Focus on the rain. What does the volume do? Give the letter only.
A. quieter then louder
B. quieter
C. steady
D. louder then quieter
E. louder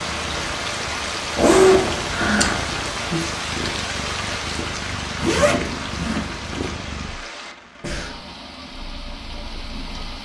B.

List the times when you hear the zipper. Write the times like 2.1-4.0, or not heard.
1.4-2.5, 5.2-6.7.